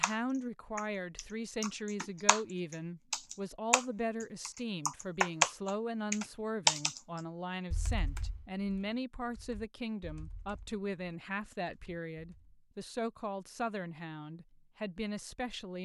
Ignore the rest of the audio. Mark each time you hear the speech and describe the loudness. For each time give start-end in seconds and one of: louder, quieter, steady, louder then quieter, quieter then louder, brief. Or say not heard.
0.0-15.8 steady.